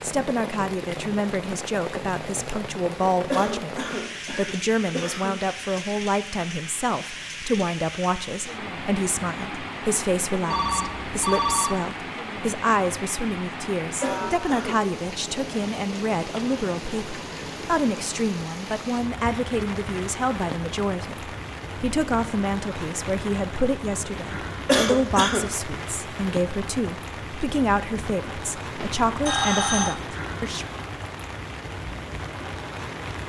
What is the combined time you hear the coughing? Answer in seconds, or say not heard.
4 s.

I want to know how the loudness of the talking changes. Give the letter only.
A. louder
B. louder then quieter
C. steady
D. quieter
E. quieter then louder
C.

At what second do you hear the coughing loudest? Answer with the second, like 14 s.
25 s.